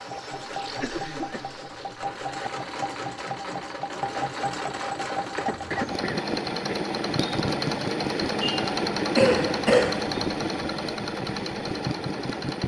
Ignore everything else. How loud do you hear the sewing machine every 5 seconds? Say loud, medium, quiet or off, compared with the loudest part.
medium, loud, loud.